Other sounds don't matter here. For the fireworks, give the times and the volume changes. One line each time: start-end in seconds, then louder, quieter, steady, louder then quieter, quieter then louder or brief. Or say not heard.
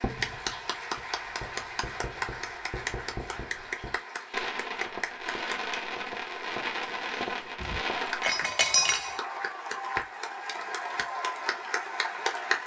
0.0-8.3 louder.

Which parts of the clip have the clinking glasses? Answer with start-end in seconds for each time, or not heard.
7.6-9.2.